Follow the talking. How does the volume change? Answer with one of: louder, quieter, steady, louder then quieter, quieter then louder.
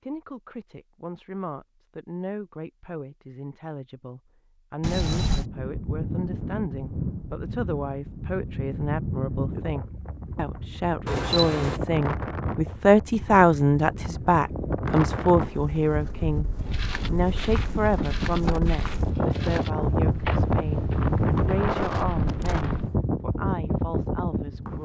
louder then quieter.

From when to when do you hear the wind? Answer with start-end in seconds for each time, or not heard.
4.8-24.7.